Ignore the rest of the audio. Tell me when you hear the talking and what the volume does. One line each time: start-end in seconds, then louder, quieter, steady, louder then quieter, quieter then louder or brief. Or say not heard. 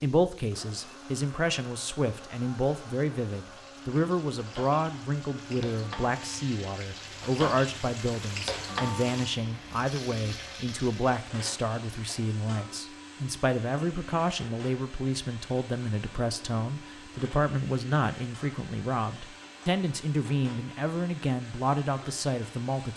0.0-22.9 steady.